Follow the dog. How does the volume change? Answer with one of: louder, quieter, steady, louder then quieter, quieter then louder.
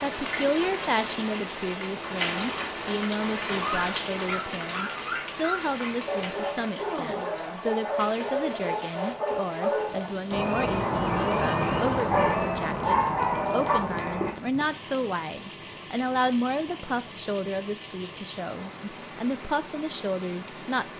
louder.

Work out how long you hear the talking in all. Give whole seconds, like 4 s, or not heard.
21 s.